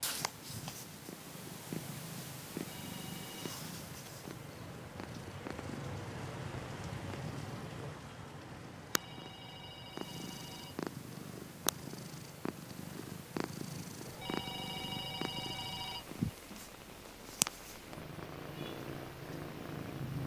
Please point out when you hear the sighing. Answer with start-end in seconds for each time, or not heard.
not heard.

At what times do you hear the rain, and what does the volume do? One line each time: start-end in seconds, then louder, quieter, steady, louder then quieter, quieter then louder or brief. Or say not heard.
0.0-20.2 louder then quieter.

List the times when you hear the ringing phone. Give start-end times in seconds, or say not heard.
2.6-3.6, 8.8-10.8, 14.0-16.1.